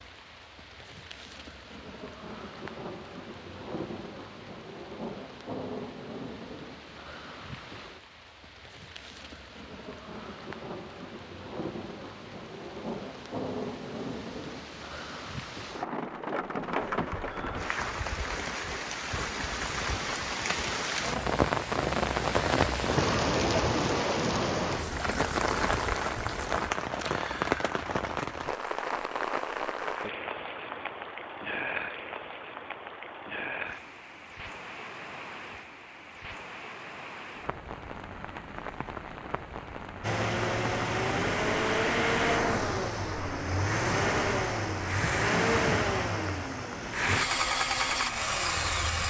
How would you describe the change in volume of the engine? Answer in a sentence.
The loudness of the engine stays about the same.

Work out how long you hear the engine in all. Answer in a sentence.
The engine can be heard for 9 seconds in total.